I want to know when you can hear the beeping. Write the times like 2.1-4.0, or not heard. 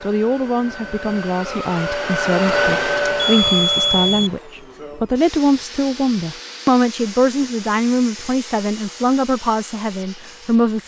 2.5-4.3.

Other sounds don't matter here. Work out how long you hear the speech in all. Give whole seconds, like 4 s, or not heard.
11 s.